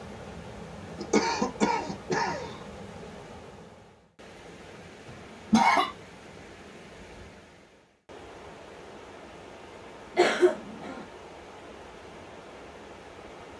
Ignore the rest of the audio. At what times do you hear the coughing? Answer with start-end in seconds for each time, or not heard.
0.9-2.6, 5.0-5.9, 10.2-11.1.